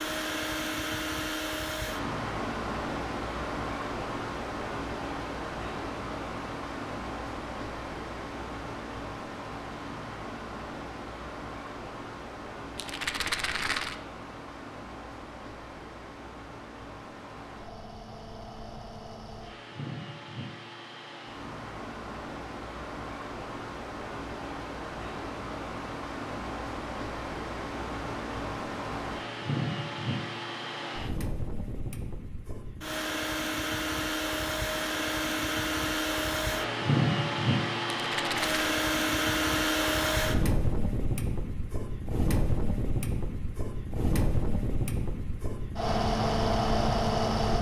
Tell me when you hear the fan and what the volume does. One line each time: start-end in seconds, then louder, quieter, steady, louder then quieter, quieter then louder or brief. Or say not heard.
0.0-47.5 quieter then louder.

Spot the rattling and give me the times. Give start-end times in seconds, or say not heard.
12.8-13.9, 38.0-38.6.